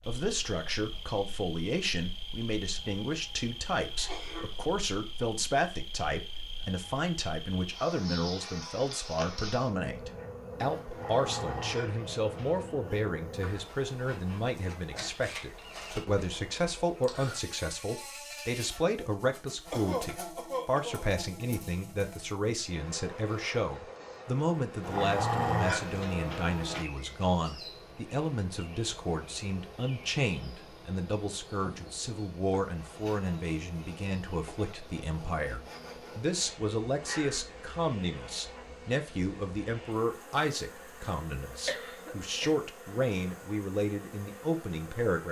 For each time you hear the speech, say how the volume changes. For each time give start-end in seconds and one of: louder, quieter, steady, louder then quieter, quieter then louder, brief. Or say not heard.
0.1-45.2 steady.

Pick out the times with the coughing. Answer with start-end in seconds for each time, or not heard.
4.0-4.6, 19.7-21.1, 40.8-42.5.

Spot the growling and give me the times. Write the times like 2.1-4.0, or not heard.
10.9-12.8, 24.8-26.9, 37.0-38.6.